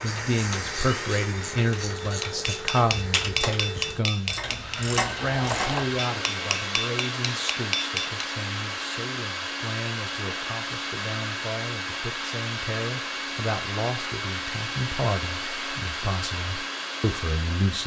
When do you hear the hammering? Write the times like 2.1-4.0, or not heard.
2.0-8.2.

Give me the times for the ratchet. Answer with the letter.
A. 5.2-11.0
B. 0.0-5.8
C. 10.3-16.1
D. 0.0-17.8
B.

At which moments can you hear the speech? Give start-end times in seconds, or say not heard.
0.0-17.8.